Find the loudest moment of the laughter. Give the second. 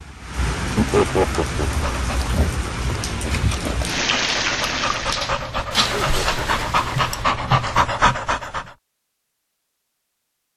1 s.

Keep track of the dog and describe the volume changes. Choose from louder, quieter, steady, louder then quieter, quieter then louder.
louder.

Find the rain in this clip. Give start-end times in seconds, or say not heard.
0.0-7.2.